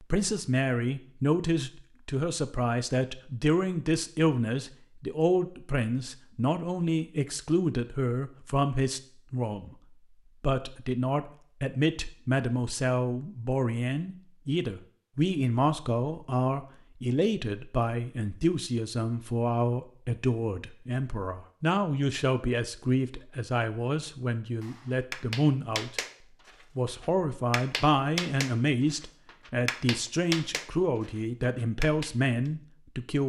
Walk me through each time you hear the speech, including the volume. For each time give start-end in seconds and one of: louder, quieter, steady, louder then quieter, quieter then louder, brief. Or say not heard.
0.0-9.8 steady
10.4-26.0 steady
26.8-33.2 steady.